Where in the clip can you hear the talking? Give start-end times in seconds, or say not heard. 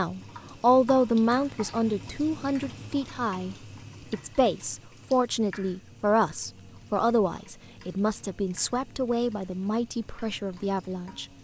0.0-11.2.